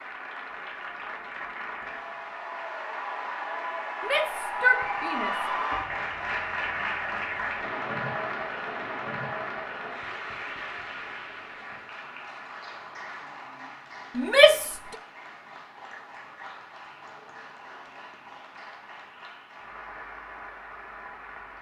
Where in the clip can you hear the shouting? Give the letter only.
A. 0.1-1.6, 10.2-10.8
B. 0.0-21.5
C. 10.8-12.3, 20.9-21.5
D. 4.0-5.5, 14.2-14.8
D.